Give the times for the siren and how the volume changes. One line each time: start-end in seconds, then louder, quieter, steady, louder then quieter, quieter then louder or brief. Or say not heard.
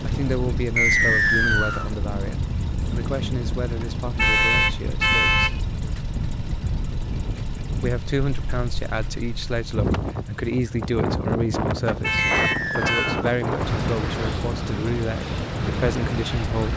not heard.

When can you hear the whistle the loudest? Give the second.
1 s.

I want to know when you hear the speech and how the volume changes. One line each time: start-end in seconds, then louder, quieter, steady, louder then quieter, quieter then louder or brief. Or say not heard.
0.0-5.5 quieter
7.8-16.7 steady.